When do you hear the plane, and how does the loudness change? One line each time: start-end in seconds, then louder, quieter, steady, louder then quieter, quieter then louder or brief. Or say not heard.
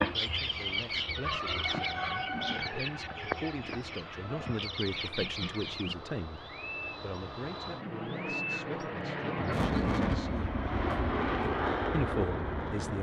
0.0-12.9 louder.